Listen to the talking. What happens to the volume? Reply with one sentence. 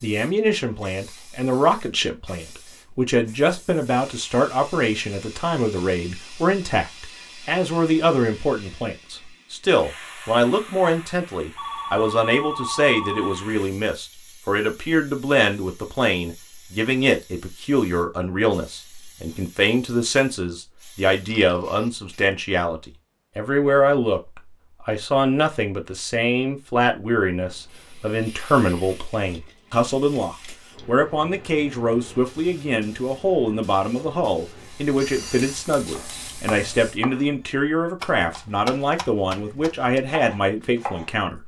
The loudness of the talking stays about the same.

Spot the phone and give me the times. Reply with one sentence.
You can hear the phone from 11.6 to 13.4 s and from 35.0 to 35.6 s.